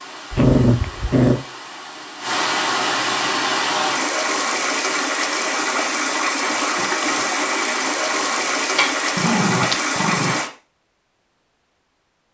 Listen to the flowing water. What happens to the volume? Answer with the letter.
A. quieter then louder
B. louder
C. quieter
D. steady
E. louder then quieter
B.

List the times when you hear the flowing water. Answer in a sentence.
You can hear the flowing water from 0.0 to 10.5 s.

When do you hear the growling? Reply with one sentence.
You can hear the growling from 0.3 to 1.4 s and from 8.8 to 10.3 s.